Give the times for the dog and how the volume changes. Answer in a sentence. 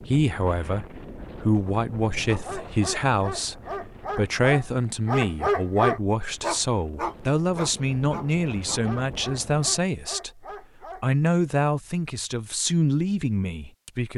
You can hear the dog from 2.2 to 11.1 s, getting louder then quieter.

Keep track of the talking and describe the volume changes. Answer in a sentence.
The volume of the talking stays about the same.